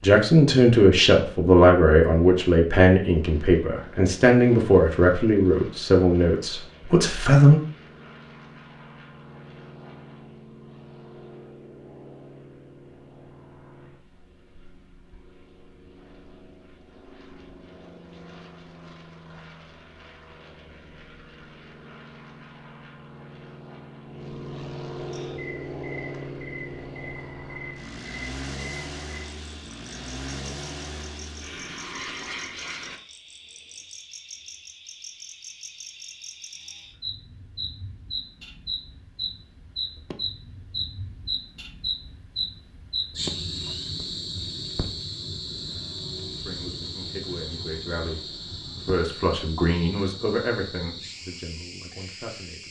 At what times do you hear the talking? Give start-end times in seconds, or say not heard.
0.0-7.6, 46.5-52.6.